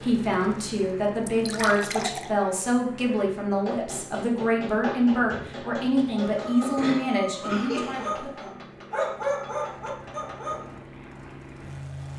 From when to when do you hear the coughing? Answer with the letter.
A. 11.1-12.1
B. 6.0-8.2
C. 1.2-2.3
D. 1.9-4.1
B.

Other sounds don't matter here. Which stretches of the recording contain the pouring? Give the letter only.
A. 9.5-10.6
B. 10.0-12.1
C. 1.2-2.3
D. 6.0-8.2
C.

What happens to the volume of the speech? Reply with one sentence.
The loudness of the speech stays about the same.